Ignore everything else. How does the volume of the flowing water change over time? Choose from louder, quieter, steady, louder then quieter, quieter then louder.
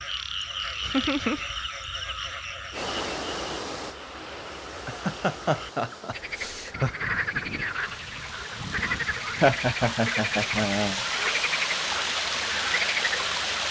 quieter then louder.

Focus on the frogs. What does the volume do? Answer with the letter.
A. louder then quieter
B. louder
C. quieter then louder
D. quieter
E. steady
C.